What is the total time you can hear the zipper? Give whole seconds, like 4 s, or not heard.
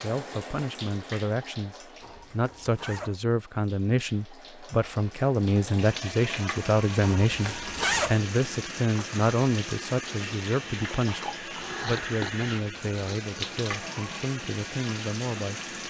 4 s.